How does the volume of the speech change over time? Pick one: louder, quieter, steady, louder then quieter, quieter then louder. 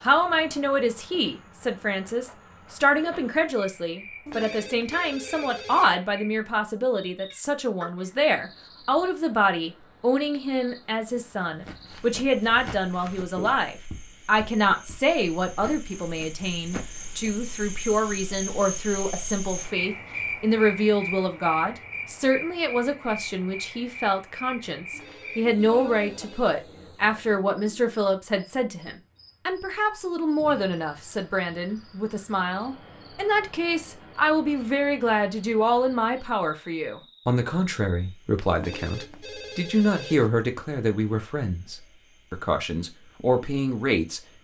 steady.